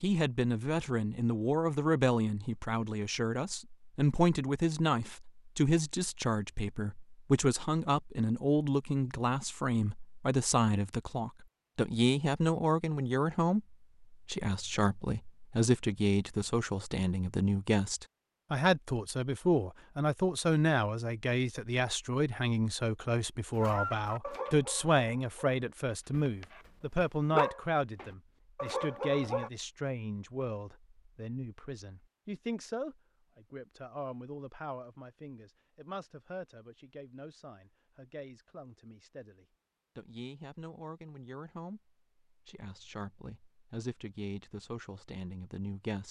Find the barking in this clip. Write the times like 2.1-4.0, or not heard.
23.6-29.5.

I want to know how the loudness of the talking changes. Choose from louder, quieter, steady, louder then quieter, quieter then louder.
quieter.